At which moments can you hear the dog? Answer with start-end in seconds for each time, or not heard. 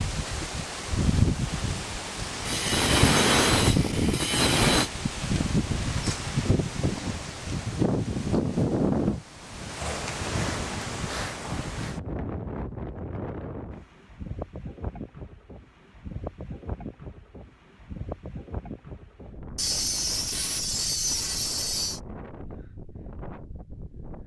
not heard.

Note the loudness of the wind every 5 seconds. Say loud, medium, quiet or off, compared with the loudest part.
loud, loud, medium, quiet, quiet.